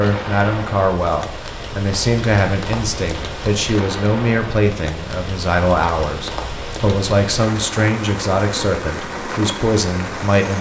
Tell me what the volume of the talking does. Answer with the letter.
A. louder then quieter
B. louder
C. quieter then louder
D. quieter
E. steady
E.